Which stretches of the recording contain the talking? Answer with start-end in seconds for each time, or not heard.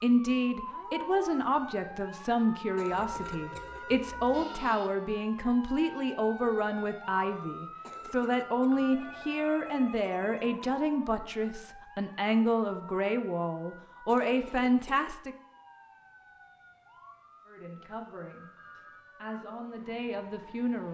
0.0-15.3, 17.4-20.8.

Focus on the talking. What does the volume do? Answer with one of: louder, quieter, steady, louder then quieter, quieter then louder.
quieter.